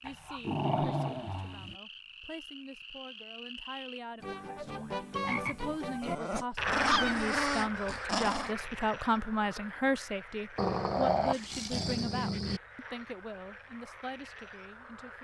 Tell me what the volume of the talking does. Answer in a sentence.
The volume of the talking goes up, then down.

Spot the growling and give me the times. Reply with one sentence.
You can hear the growling from 0.1 to 1.8 s, from 6.0 to 8.6 s and from 10.6 to 12.6 s.